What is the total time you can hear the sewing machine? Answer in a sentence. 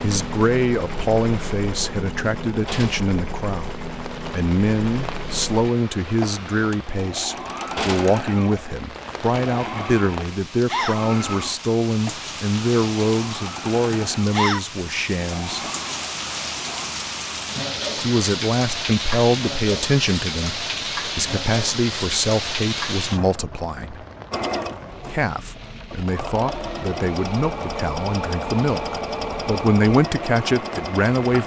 You can hear the sewing machine for 24 seconds altogether.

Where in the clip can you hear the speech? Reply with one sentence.
You can hear the speech from 0.0 to 15.6 s, from 17.9 to 24.0 s and from 25.1 to 31.4 s.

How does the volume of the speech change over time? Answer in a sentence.
The loudness of the speech stays about the same.